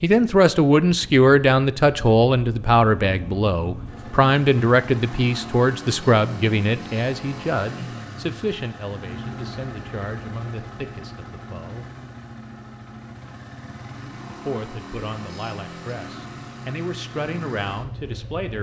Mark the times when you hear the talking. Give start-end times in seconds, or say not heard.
0.0-11.8, 14.2-18.5.